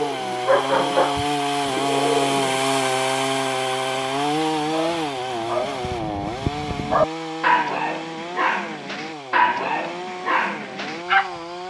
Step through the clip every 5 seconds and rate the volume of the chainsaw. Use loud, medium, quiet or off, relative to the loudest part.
loud, medium, medium.